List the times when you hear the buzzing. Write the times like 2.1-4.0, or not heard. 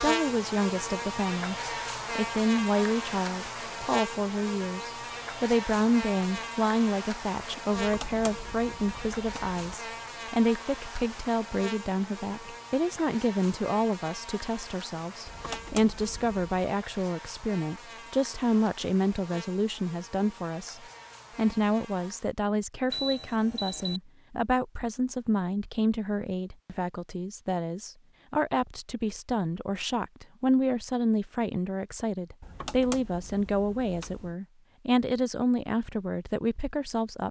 0.0-22.4.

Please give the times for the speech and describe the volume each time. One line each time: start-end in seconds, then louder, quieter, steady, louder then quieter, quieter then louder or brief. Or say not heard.
0.0-37.2 steady.